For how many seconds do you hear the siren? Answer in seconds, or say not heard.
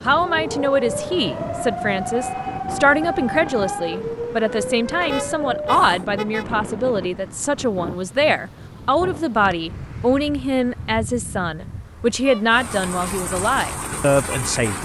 8 s.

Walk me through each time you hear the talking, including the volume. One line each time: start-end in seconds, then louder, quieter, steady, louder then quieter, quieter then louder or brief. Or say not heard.
0.0-14.7 steady.